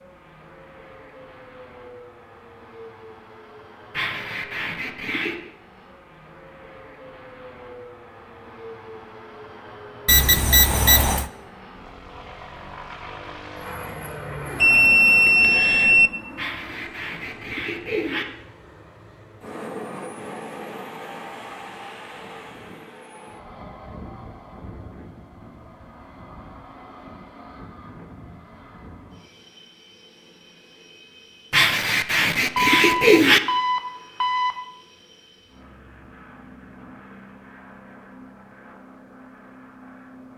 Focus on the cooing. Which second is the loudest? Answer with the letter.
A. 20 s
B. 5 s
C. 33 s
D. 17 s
C.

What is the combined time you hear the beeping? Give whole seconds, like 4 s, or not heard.
5 s.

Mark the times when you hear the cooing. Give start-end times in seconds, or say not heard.
3.9-5.3, 16.4-18.2, 31.5-33.4.